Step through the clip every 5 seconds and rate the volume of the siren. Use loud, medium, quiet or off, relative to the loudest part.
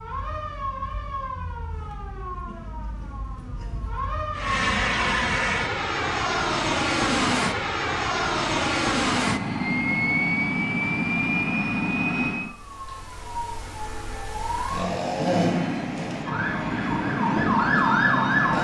medium, off, medium, loud.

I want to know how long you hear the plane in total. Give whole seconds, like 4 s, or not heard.
12 s.